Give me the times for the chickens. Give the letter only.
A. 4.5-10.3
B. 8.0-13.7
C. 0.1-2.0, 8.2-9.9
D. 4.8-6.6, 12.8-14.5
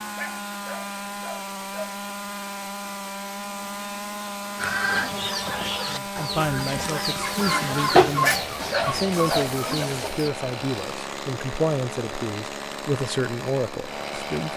A.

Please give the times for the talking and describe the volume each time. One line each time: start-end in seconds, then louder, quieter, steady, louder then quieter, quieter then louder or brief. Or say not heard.
5.8-14.5 steady.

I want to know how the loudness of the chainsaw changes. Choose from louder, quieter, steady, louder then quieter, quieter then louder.
steady.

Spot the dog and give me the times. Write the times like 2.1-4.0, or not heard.
0.1-2.0, 8.2-9.9.